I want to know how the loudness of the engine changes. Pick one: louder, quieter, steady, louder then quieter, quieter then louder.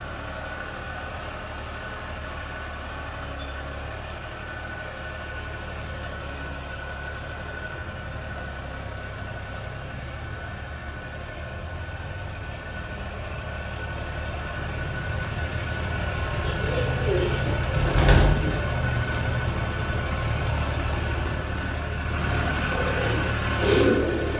louder.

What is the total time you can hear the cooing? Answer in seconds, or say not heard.
4 s.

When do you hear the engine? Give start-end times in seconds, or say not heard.
0.0-24.3.